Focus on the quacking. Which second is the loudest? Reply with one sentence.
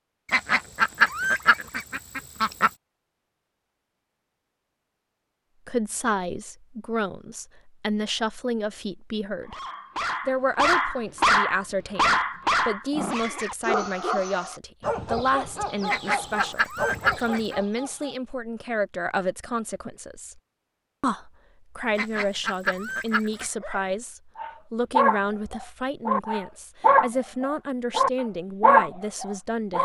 The loudest moment of the quacking is at 1 second.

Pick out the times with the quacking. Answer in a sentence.
You can hear the quacking from 0.3 to 2.7 s, from 15.8 to 17.6 s and from 21.9 to 23.5 s.